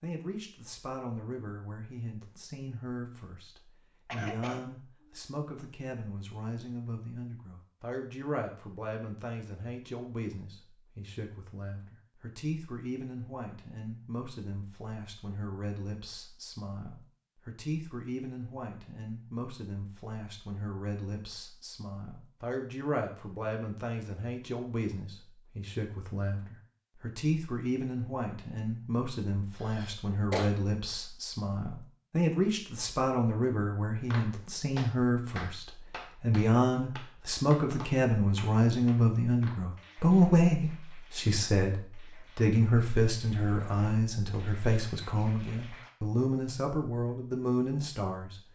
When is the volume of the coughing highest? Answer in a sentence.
The loudest moment of the coughing is at 30 seconds.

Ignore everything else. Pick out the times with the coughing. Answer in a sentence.
The coughing can be heard from 4.0 to 4.7 s and from 29.6 to 30.5 s.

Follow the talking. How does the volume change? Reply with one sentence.
The volume of the talking goes up.